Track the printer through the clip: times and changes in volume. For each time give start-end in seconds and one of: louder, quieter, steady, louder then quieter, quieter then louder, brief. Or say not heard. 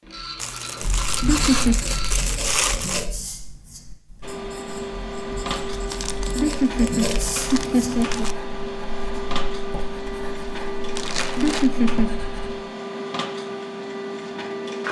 0.0-2.1 brief
4.2-14.8 steady.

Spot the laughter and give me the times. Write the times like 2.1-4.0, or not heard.
1.2-1.8, 6.3-8.3, 11.3-12.2.